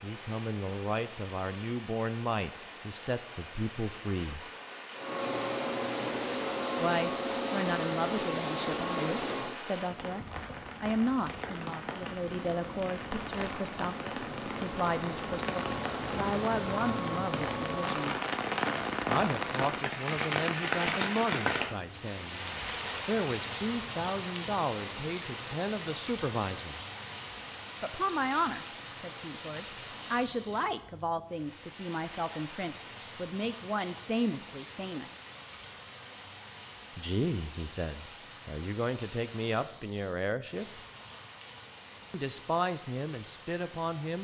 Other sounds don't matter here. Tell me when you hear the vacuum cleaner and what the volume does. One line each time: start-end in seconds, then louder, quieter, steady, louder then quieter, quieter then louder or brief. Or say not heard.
5.0-9.7 steady
12.2-18.2 louder.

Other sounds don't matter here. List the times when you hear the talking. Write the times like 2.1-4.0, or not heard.
0.0-4.4, 6.8-18.1, 19.1-26.9, 27.8-35.1, 37.0-40.8, 42.1-44.1.